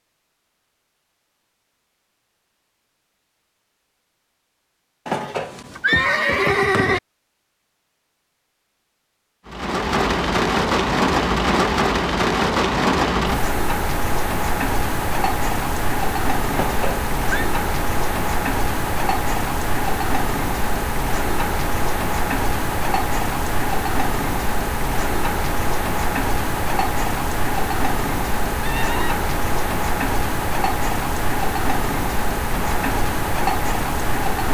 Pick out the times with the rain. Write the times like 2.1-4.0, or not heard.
9.4-34.4.